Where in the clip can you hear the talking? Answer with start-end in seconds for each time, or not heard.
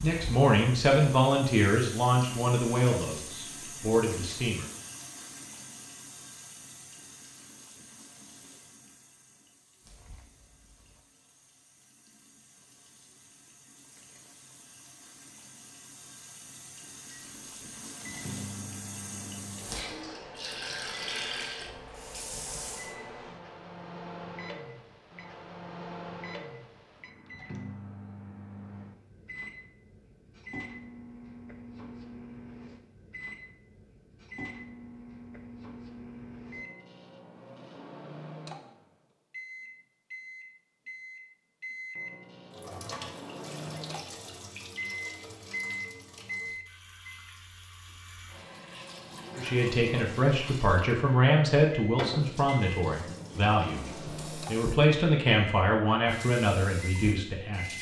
0.0-4.7, 49.4-57.7.